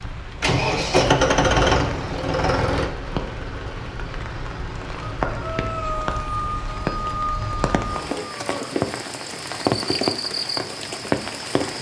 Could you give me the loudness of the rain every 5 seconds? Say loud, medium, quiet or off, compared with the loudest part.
medium, loud, loud.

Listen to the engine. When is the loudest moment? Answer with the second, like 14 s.
1 s.